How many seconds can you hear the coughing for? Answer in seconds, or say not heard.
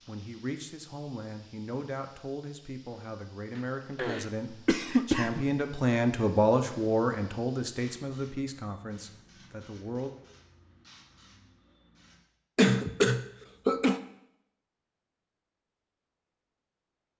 3 s.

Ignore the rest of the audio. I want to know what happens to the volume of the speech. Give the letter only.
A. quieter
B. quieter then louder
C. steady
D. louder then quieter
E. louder
D.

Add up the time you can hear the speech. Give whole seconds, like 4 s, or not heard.
10 s.